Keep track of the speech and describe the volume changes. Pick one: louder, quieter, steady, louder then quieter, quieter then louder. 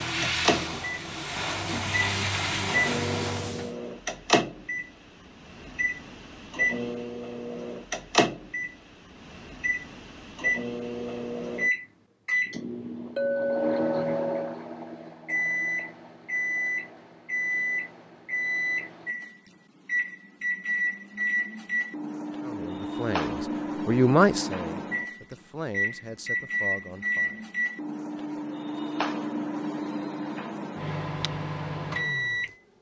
louder then quieter.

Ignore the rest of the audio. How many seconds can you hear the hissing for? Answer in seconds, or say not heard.
4 s.